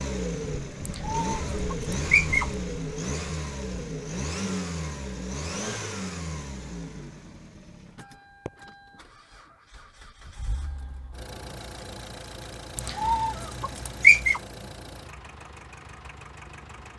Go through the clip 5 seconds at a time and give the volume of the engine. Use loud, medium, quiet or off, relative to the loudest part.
loud, medium, medium, quiet.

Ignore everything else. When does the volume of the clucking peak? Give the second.
14 s.